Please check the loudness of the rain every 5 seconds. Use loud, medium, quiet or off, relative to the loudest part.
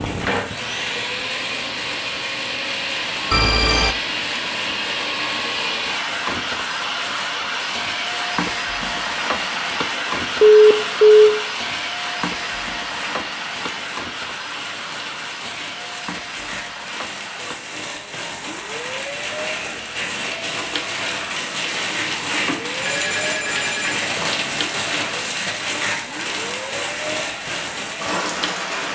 medium, medium, medium, medium, loud, loud.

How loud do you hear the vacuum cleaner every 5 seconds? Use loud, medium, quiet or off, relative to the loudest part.
loud, loud, loud, medium, medium, medium.